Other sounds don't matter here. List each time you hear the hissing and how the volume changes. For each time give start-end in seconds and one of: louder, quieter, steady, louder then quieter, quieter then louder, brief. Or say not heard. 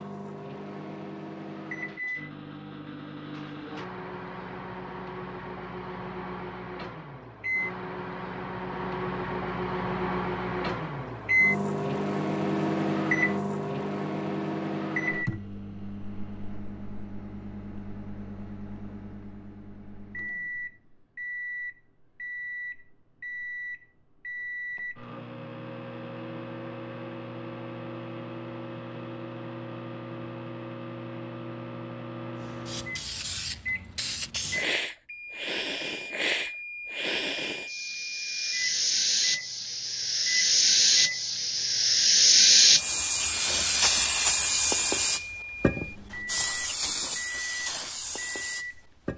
32.4-49.1 louder then quieter.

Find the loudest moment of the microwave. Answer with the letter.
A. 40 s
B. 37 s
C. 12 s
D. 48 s
C.